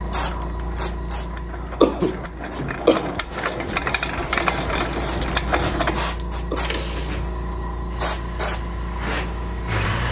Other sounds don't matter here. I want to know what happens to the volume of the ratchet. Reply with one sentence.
The volume of the ratchet goes up.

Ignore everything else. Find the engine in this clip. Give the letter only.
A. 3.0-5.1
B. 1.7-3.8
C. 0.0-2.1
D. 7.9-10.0
D.